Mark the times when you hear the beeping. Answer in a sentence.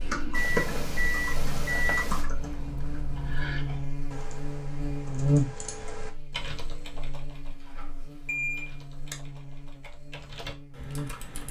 The beeping can be heard from 0.3 to 2.2 s and from 7.6 to 9.2 s.